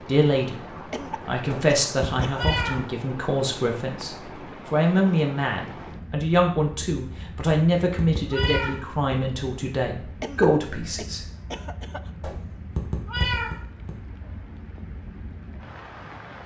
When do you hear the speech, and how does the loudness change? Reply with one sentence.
The speech can be heard briefly from 0.1 to 0.6 s; and from 1.2 to 11.2 s, at a steady volume.